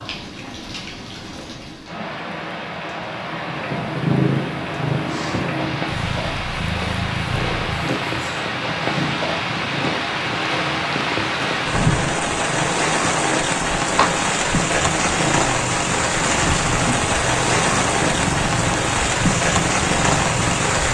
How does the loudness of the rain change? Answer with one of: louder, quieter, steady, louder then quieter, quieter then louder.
louder.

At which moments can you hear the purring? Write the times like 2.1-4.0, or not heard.
3.4-20.9.